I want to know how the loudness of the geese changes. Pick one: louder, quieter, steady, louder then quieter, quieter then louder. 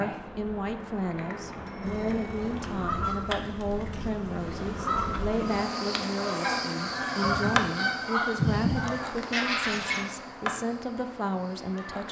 quieter then louder.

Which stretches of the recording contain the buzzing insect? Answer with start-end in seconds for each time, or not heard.
0.0-12.0.